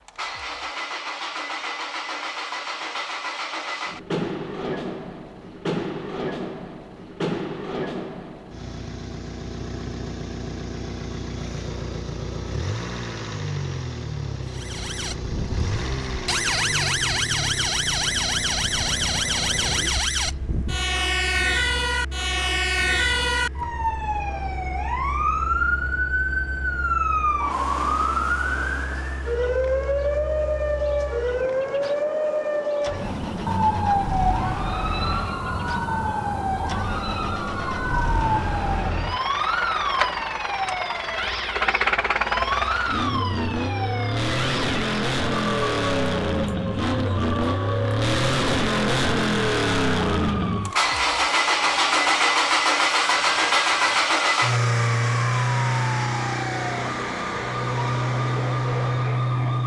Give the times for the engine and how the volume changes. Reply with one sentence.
You can hear the engine from 0.1 to 59.6 s, getting quieter then louder.